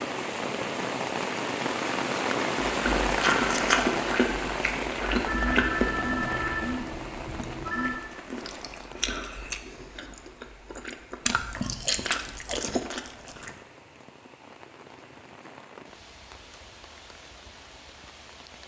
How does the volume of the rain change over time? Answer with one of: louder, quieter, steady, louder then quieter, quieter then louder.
quieter.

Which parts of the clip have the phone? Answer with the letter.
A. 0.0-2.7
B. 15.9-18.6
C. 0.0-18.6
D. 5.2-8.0
D.